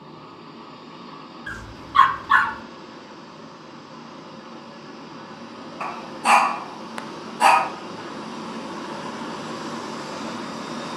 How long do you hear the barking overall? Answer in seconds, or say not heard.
3 s.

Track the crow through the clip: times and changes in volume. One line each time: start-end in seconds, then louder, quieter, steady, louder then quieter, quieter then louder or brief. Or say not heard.
not heard.